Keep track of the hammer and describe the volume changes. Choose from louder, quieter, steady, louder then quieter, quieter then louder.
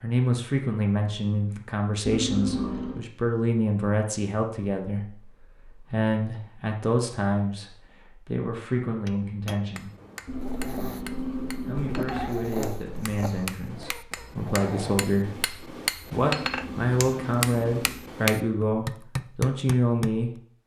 louder.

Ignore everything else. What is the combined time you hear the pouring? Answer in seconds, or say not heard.
5 s.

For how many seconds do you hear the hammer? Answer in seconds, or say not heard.
11 s.